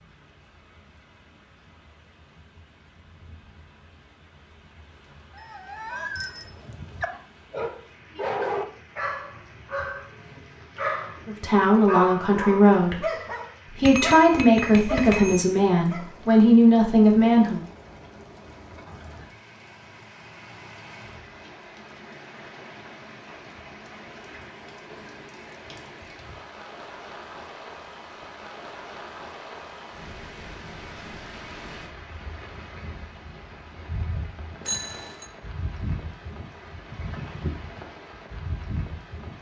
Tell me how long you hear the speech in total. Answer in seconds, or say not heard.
6 s.